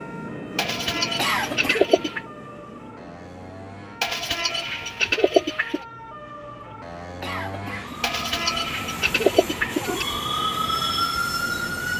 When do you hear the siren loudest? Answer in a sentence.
The loudest moment of the siren is at 11 seconds.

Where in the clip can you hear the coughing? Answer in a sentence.
The coughing can be heard from 1.1 to 1.9 s and from 7.2 to 8.0 s.